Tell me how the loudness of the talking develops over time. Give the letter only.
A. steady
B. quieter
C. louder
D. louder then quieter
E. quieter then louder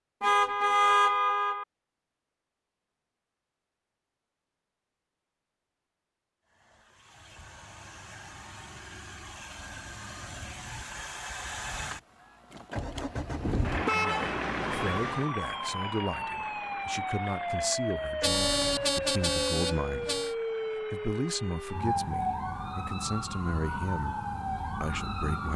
A.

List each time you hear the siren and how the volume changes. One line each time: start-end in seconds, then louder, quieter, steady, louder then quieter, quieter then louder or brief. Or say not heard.
14.8-25.5 steady.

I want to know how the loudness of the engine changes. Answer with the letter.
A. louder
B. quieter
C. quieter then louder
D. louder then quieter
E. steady
D.